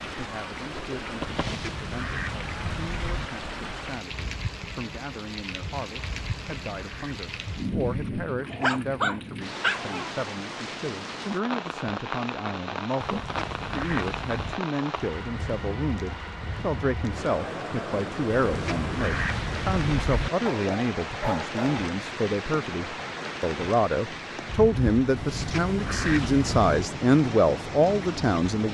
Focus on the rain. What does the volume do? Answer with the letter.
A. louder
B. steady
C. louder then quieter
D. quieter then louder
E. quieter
B.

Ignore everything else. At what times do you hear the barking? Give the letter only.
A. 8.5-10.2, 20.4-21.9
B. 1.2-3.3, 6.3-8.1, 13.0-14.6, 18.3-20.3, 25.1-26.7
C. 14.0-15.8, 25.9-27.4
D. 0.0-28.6
A.